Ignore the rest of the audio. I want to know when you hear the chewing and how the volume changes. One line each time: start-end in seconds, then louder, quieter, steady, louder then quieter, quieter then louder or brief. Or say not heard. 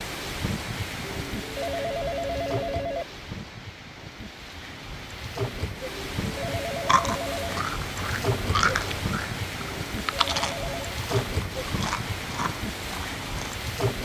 6.8-13.6 louder then quieter.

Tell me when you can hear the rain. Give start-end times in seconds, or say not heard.
0.0-14.0.